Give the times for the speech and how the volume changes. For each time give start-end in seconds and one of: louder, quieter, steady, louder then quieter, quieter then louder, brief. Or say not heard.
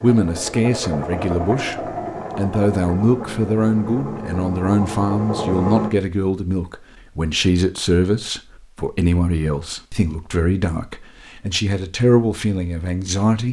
0.0-13.4 steady.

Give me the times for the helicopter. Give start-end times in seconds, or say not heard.
0.0-5.9.